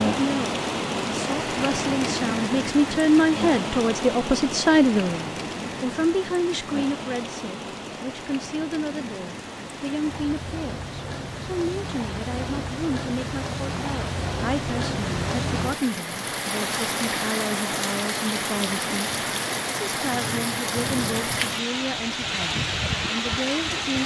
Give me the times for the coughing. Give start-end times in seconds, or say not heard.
not heard.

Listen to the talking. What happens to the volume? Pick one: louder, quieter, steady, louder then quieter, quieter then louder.
quieter.